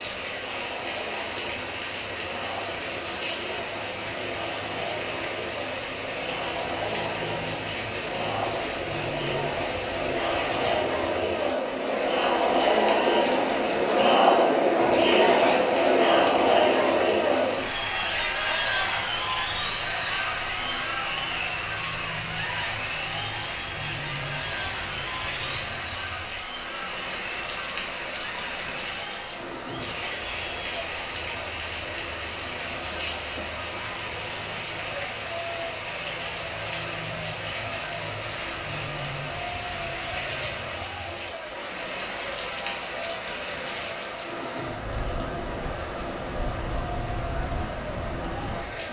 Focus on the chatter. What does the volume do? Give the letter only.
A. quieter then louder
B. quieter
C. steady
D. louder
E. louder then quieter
E.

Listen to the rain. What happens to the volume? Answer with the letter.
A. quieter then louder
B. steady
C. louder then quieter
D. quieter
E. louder
B.